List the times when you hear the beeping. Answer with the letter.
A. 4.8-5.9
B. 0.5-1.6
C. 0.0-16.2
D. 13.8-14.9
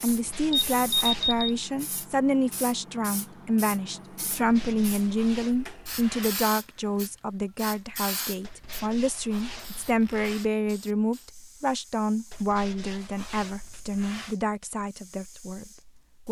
B.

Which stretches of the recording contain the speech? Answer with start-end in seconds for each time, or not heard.
0.0-16.2.